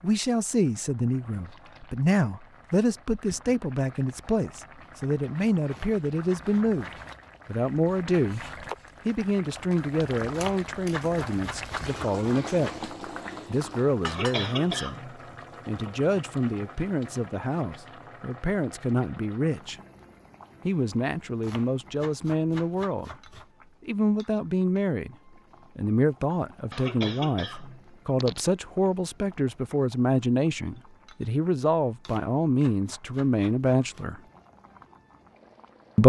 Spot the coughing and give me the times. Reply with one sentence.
The coughing can be heard from 14.1 to 15.2 s and from 26.7 to 28.5 s.